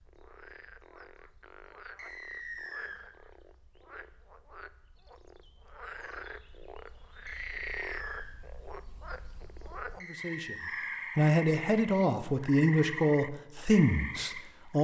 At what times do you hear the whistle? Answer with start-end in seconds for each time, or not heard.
1.9-3.0, 7.2-8.3, 10.0-11.0.